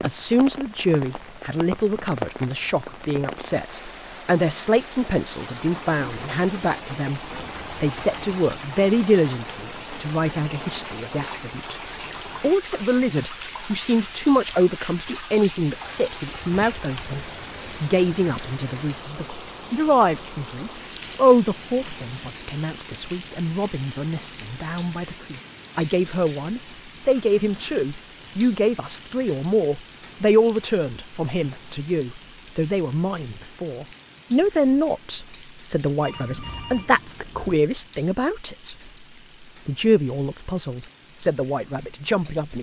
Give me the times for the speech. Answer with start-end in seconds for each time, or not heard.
0.0-11.8, 12.4-38.9, 39.6-42.5.